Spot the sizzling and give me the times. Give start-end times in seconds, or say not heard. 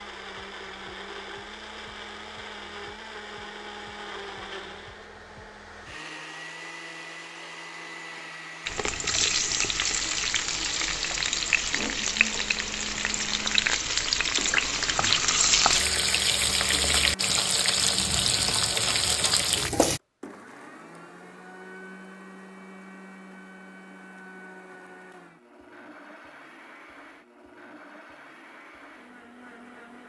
8.7-20.0.